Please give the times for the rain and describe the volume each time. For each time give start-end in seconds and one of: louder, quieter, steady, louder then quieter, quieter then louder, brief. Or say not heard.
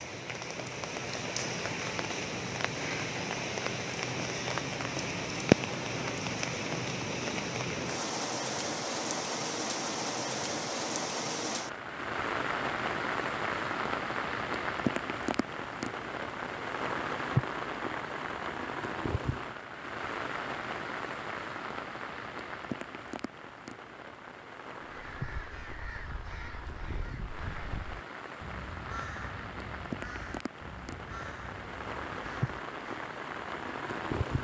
0.0-34.3 quieter.